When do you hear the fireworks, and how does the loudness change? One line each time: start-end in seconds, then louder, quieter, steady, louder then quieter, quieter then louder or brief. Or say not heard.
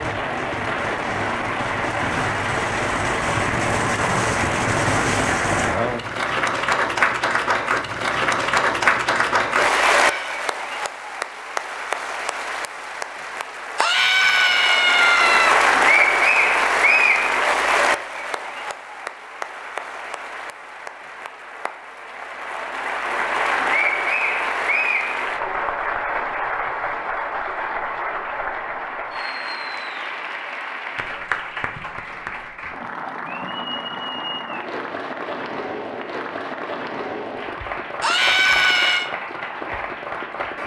0.0-5.8 louder.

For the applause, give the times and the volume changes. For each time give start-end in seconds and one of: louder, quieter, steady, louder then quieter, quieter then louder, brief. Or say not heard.
0.0-40.6 quieter.